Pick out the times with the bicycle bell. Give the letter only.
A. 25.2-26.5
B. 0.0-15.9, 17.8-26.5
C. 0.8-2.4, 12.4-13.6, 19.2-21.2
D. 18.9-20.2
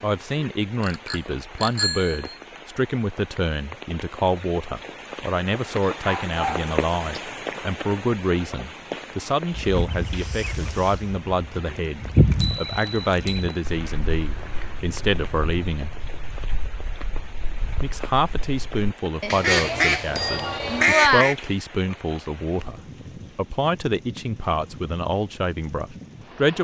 C.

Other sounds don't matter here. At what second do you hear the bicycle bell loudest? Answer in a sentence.
The loudest moment of the bicycle bell is at 21 seconds.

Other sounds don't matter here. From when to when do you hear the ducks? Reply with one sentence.
You can hear the ducks from 9.5 to 21.4 s.